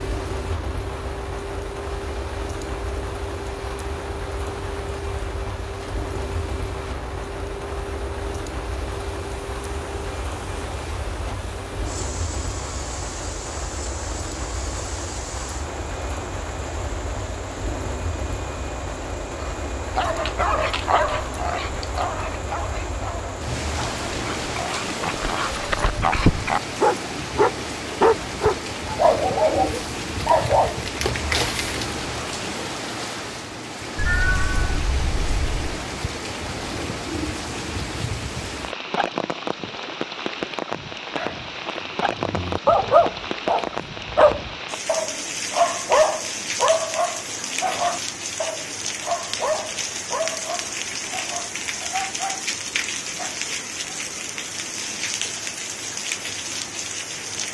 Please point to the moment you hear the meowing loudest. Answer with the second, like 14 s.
34 s.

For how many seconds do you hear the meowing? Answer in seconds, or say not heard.
2 s.